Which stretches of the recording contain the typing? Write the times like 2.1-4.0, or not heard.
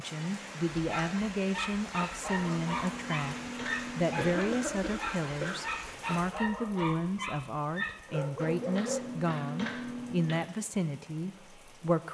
2.4-4.2, 8.3-10.4.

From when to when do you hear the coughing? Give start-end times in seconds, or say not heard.
4.2-5.7.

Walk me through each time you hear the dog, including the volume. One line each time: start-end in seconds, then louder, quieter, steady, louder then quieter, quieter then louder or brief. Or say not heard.
0.7-9.2 steady.